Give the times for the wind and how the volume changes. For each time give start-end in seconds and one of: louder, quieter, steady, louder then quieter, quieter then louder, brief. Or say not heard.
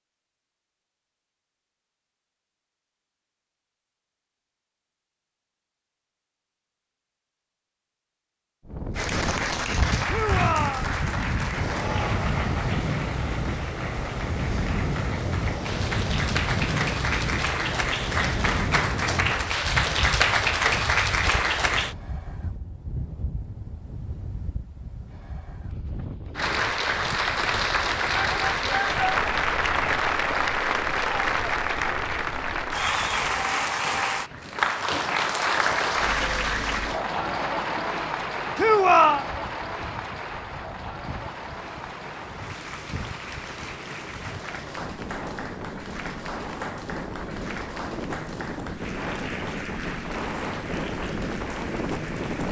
8.7-52.4 quieter then louder.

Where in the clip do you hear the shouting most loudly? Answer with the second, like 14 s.
39 s.